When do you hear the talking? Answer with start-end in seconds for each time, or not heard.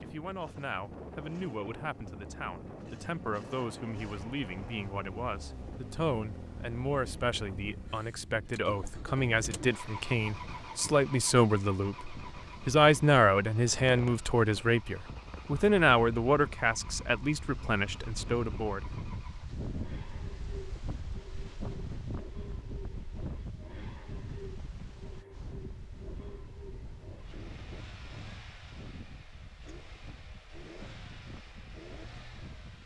0.0-18.9.